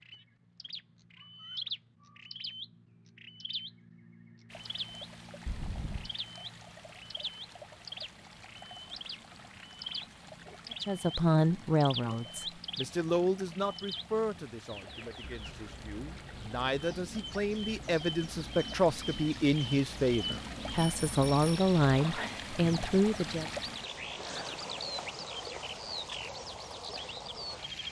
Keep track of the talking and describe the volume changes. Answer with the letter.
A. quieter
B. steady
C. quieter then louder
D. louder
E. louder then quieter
C.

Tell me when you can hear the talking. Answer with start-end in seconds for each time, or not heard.
10.8-23.4.